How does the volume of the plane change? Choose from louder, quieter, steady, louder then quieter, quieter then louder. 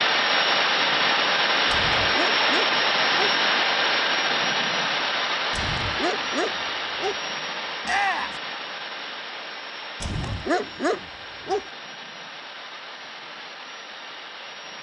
quieter.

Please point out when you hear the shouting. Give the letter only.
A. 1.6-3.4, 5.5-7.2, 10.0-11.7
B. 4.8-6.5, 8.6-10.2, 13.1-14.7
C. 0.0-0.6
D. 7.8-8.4
D.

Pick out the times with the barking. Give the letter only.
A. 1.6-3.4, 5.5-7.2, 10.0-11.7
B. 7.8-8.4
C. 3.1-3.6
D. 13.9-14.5
A.